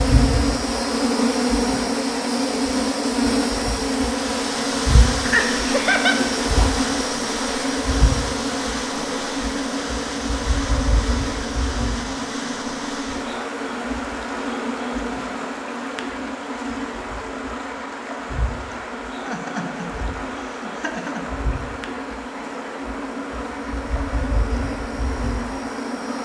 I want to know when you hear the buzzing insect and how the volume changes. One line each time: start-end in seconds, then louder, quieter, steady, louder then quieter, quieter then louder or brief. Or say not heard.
0.0-26.2 quieter.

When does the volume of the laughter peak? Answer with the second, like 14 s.
6 s.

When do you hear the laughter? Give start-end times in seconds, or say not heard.
5.2-6.2, 19.2-21.3.